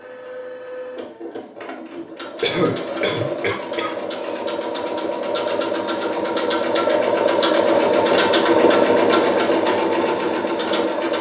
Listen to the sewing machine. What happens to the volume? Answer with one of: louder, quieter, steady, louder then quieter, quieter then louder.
louder.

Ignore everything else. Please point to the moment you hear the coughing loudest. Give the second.
3 s.